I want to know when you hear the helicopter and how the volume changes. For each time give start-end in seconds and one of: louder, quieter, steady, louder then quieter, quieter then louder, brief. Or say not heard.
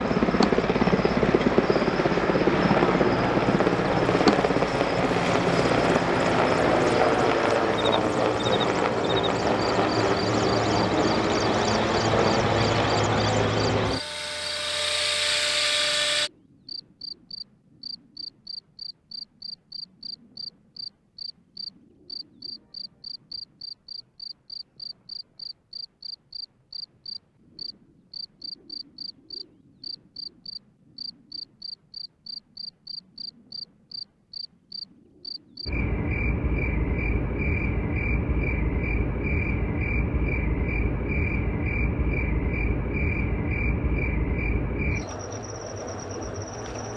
0.0-16.3 steady.